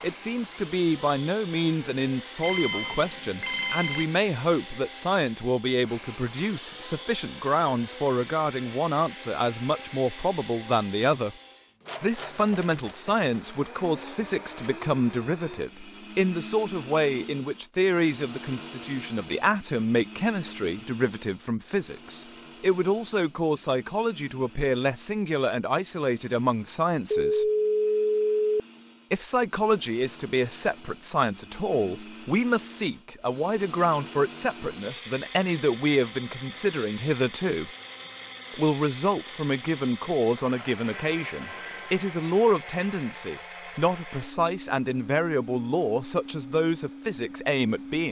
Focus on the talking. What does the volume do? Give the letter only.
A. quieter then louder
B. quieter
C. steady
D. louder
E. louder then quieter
C.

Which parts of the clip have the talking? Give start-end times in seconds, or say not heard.
0.0-11.3, 12.0-27.5, 29.1-37.7, 38.5-48.0.